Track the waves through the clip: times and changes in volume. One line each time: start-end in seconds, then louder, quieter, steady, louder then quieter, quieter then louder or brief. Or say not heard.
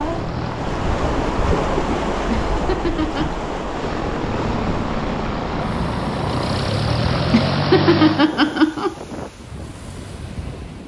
0.0-10.8 quieter.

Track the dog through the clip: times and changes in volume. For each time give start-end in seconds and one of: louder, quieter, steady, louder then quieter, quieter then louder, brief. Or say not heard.
not heard.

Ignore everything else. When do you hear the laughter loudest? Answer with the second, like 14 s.
8 s.